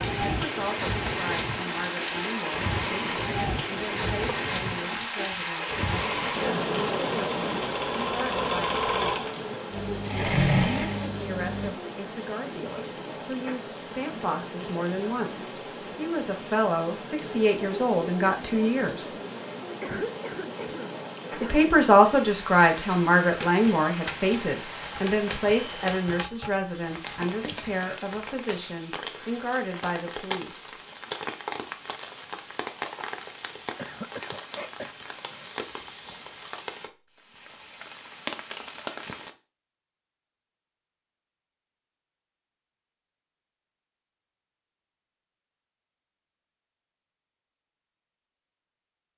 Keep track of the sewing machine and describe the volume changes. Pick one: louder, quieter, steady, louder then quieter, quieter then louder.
louder.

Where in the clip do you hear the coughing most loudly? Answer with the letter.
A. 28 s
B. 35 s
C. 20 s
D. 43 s
C.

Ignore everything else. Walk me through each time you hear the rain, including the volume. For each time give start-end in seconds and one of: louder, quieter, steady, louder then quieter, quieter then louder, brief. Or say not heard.
0.0-39.3 quieter.